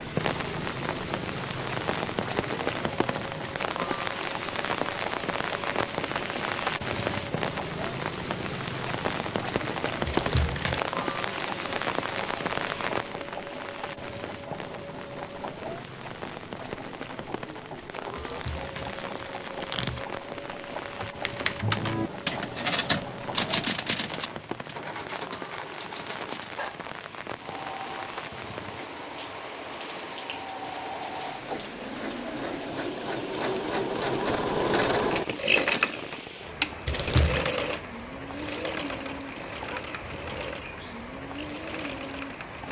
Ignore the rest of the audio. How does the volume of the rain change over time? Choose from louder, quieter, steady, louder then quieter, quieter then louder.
quieter.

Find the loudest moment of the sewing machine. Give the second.
35 s.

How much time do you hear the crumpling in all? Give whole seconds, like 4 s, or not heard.
3 s.